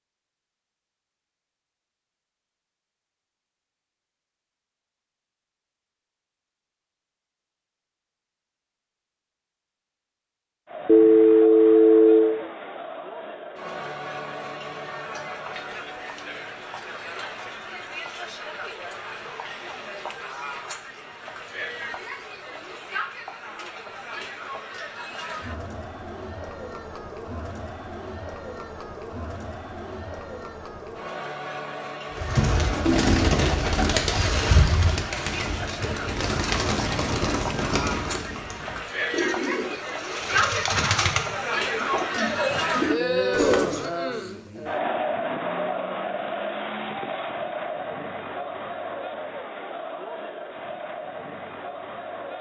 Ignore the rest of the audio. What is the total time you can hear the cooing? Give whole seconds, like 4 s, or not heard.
12 s.